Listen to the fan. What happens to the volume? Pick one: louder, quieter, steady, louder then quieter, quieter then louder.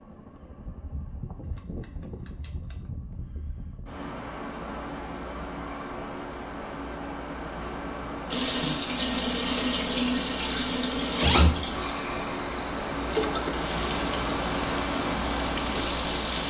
louder.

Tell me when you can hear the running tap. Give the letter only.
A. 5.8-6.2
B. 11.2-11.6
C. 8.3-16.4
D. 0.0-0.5
C.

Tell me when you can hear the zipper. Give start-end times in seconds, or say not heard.
11.2-11.6.